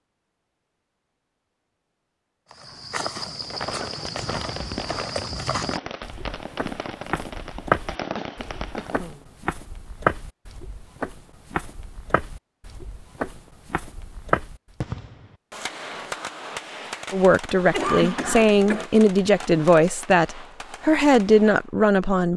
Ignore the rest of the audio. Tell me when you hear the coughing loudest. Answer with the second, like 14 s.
18 s.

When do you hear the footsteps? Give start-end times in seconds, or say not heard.
2.5-14.8.